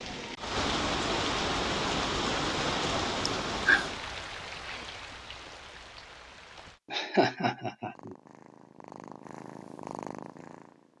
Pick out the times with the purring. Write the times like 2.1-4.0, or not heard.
8.0-10.9.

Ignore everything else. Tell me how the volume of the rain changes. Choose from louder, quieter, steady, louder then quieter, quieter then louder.
quieter.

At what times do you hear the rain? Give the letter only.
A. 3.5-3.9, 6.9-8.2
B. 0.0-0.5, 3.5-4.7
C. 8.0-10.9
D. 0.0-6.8
D.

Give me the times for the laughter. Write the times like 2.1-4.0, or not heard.
3.5-3.9, 6.9-8.2.